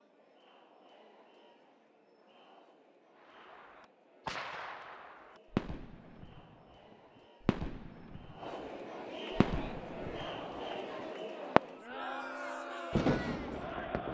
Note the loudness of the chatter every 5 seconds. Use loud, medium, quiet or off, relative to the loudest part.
quiet, medium, loud.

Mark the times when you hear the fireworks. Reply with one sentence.
The fireworks can be heard from 3.2 to 11.6 s and from 12.9 to 14.0 s.